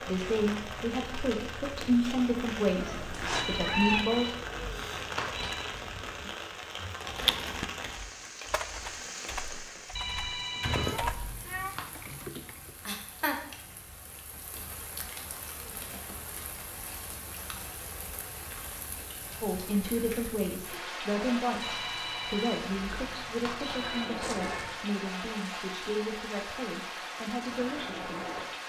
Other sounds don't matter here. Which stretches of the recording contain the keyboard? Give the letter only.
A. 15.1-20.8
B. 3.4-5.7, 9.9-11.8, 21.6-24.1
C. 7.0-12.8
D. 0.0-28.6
C.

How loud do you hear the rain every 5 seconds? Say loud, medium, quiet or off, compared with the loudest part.
loud, loud, loud, medium, loud, loud.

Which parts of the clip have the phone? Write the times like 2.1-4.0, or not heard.
3.4-5.7, 9.9-11.8, 21.6-24.1.